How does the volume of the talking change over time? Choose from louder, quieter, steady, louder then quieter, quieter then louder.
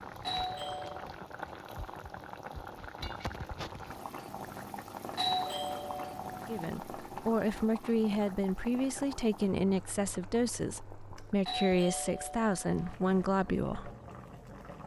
steady.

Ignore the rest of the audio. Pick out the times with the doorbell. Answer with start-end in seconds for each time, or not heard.
0.2-1.1, 5.2-6.7, 11.4-12.9.